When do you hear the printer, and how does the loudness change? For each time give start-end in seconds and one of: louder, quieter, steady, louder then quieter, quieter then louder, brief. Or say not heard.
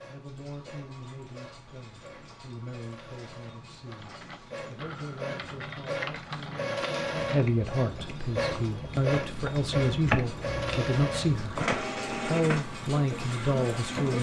0.0-14.1 louder.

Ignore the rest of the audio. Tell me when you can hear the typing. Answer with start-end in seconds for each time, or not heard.
3.9-11.8.